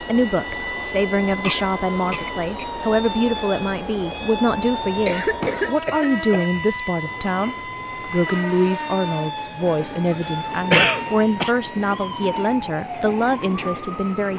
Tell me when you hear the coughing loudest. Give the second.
11 s.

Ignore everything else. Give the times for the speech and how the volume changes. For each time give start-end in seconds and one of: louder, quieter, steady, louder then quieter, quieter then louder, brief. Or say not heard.
0.0-14.3 steady.